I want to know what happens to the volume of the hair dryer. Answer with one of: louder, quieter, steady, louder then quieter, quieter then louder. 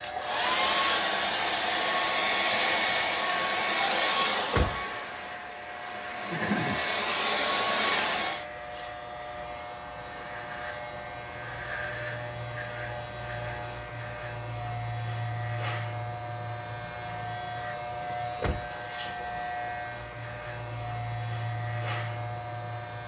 quieter then louder.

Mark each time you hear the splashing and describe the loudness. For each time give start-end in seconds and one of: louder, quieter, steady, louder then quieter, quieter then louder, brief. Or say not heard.
not heard.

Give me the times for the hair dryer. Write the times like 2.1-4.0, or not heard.
0.0-8.4.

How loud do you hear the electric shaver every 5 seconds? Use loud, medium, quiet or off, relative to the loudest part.
medium, medium, loud, loud, loud.